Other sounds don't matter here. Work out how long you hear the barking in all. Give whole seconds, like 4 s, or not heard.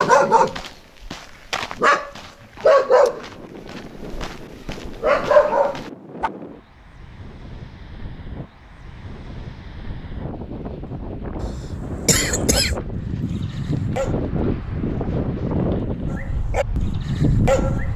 10 s.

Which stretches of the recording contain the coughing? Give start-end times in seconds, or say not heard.
11.4-12.8.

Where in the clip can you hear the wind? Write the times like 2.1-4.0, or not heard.
3.2-17.9.